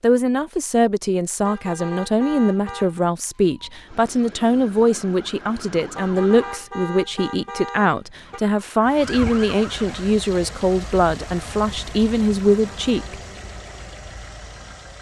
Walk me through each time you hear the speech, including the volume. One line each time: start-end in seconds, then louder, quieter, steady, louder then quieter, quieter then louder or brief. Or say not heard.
0.0-13.2 steady.